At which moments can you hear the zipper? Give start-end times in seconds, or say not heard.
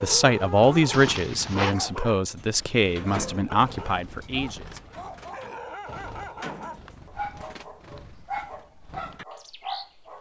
0.9-1.8.